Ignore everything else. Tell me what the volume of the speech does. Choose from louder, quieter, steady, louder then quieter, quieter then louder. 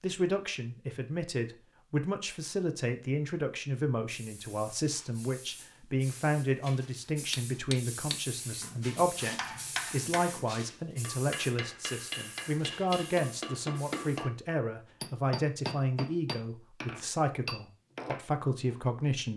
steady.